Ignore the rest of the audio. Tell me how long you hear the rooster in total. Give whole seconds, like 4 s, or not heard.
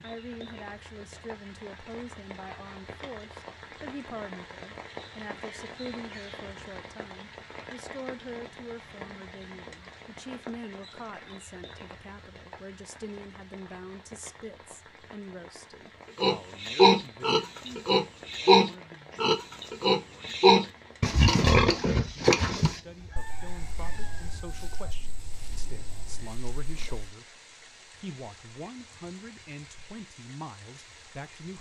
2 s.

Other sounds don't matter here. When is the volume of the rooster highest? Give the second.
23 s.